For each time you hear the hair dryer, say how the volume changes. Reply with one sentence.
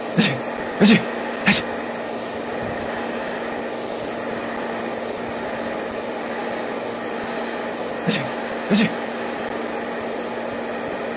You can hear the hair dryer from 0.0 to 11.1 s, at a steady volume.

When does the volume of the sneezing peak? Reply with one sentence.
The loudest moment of the sneezing is at 1 second.